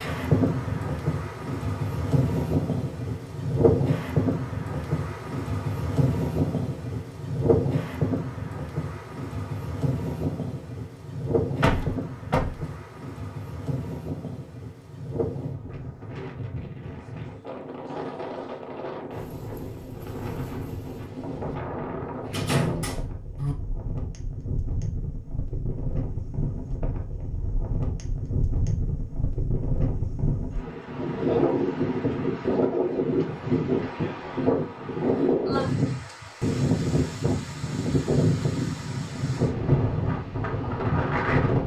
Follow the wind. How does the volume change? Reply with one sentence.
The volume of the wind goes down, then up.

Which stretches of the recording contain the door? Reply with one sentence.
The door can be heard from 11.6 to 12.7 s and from 22.2 to 23.6 s.